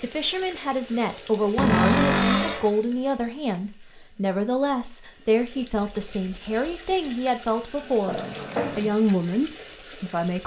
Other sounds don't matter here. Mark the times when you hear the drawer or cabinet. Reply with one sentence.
You can hear the drawer or cabinet from 1.6 to 2.7 s and from 8.1 to 8.9 s.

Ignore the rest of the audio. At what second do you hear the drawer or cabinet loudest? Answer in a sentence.
The volume of the drawer or cabinet peaks at 2 seconds.